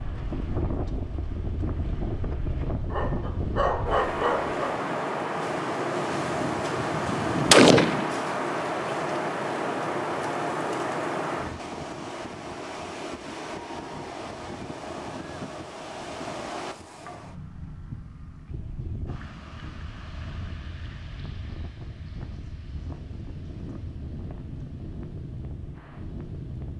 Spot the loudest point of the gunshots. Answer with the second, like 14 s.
8 s.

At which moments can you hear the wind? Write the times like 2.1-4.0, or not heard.
0.0-26.7.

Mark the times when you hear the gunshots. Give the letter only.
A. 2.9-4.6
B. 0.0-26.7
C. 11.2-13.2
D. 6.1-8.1
D.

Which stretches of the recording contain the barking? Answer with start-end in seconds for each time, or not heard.
2.9-4.6.